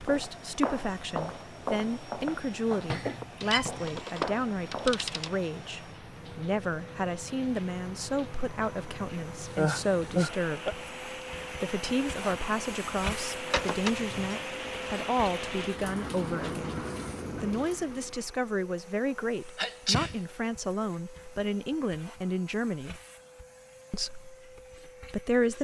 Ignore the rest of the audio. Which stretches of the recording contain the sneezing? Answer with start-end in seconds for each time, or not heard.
2.9-3.9, 9.6-10.8, 19.6-20.1.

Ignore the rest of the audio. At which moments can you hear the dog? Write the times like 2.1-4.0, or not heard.
not heard.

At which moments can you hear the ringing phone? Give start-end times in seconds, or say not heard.
3.4-5.3, 13.5-14.3.